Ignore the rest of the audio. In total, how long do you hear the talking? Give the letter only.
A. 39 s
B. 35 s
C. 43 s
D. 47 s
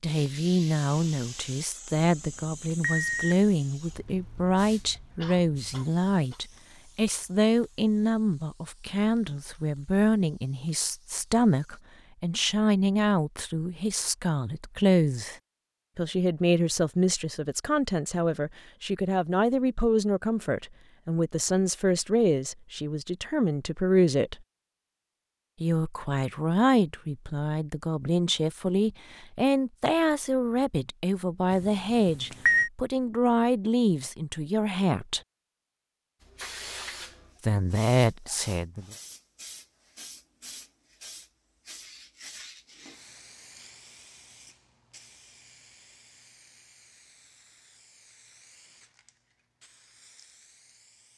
B.